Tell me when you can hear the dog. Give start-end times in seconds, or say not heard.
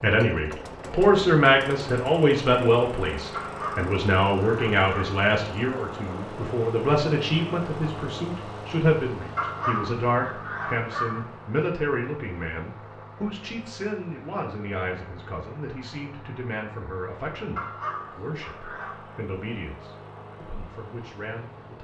3.3-5.2, 9.3-11.2, 17.6-19.2.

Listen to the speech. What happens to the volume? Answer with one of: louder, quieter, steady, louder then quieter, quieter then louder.
quieter.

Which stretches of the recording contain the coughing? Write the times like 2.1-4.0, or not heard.
not heard.